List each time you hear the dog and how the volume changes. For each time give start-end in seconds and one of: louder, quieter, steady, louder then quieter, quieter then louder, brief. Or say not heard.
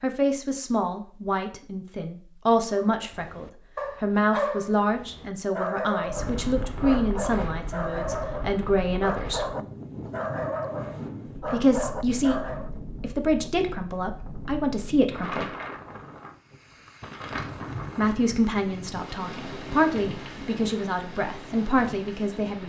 2.8-12.7 steady.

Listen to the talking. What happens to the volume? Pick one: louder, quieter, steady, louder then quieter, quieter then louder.
steady.